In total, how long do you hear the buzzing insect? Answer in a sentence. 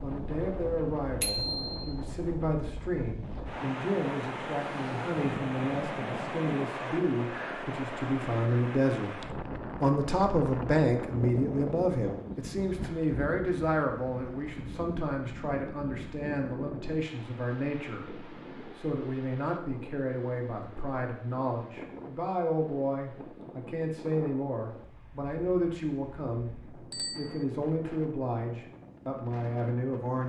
You can't hear the buzzing insect here.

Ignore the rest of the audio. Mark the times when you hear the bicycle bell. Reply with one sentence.
You can hear the bicycle bell from 1.2 to 1.8 s and from 26.9 to 27.4 s.